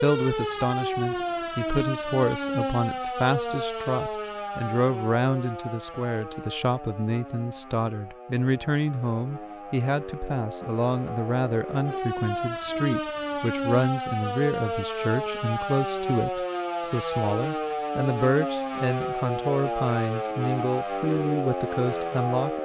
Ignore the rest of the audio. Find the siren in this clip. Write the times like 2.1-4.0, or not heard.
0.0-22.6.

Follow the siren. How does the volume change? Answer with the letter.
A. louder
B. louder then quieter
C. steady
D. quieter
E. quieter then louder
E.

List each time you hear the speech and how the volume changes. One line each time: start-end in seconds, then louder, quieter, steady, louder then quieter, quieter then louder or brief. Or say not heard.
0.0-22.6 steady.